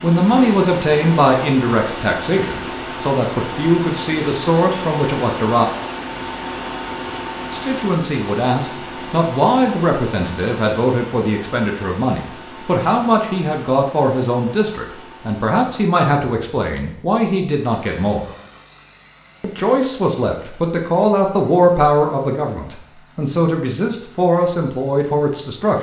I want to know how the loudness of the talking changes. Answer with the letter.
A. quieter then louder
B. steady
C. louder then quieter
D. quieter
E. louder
B.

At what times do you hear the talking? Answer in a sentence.
You can hear the talking from 0.0 to 5.7 s, from 7.5 to 18.2 s and from 19.4 to 25.7 s.